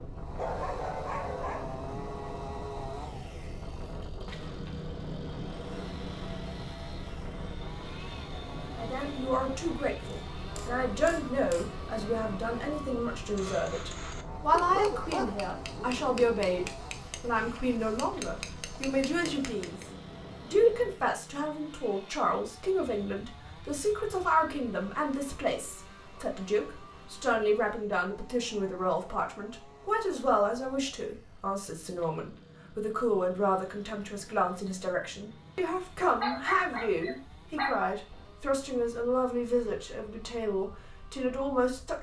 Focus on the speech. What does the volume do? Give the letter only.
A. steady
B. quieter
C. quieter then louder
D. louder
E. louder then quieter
A.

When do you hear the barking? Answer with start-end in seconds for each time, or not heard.
0.3-1.8, 14.5-16.7, 36.2-37.8.